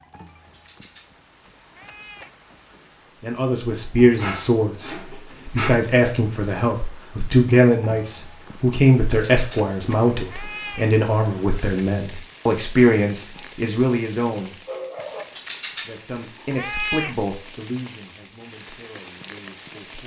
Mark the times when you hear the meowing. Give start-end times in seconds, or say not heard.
0.5-2.4, 9.1-10.9, 15.3-17.1.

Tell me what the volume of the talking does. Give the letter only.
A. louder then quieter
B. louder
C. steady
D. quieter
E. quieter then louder
D.